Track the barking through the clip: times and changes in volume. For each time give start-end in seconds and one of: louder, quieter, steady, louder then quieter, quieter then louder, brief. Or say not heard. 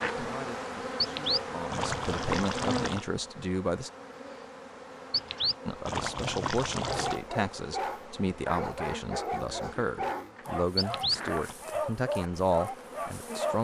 6.7-13.5 steady.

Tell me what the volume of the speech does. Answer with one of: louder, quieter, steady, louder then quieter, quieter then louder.
louder.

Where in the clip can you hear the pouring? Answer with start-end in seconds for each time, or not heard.
1.0-3.0, 5.1-7.2, 10.8-11.6.